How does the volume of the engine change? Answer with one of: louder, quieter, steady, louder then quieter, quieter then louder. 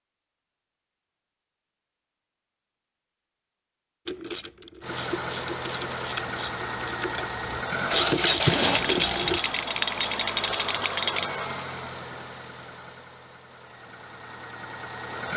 louder then quieter.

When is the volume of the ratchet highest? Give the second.
8 s.